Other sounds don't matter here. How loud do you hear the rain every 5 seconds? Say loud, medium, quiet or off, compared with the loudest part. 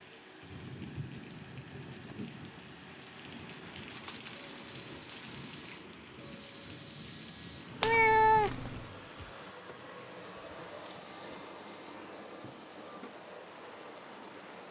loud, loud, medium.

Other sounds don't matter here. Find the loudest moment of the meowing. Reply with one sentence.
The loudest moment of the meowing is at 8 seconds.